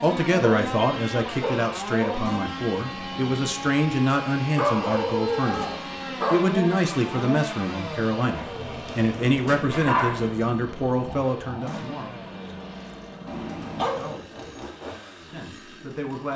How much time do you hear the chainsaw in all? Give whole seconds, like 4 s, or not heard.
16 s.